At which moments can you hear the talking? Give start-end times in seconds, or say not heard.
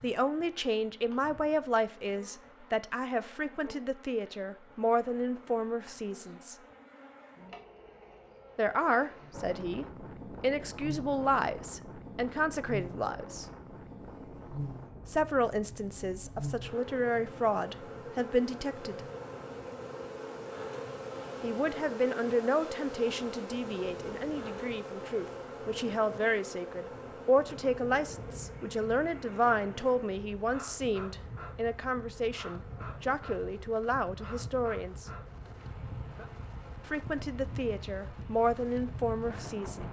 0.0-6.5, 8.6-13.4, 15.1-19.0, 21.4-35.0, 36.9-39.8.